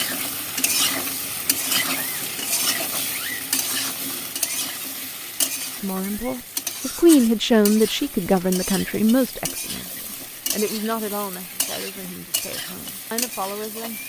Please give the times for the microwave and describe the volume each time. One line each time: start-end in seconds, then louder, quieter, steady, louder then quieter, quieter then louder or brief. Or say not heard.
not heard.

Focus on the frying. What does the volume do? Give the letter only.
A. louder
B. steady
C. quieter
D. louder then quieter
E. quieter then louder
C.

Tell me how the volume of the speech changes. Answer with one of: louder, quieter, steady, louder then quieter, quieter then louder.
quieter.